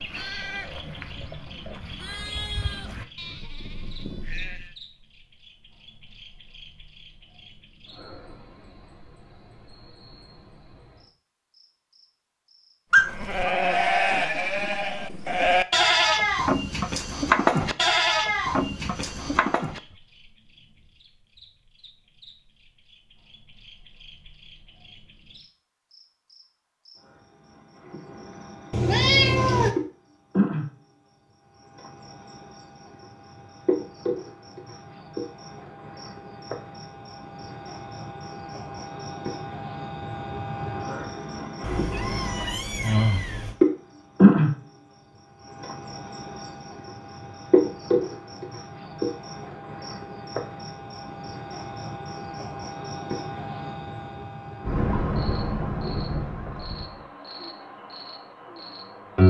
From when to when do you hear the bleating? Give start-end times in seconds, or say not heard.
0.0-4.8, 12.9-19.8.